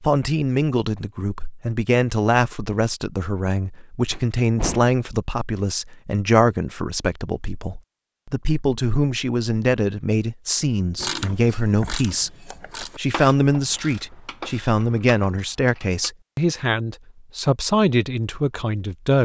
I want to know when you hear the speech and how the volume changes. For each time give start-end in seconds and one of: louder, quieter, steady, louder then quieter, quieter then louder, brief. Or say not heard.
0.0-19.2 steady.